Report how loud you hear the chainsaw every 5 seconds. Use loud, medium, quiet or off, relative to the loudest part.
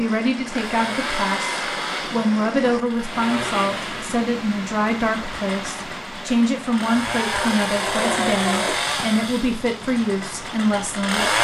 medium, loud, loud.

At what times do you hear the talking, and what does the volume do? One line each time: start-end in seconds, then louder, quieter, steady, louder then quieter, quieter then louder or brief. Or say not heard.
0.0-11.4 steady.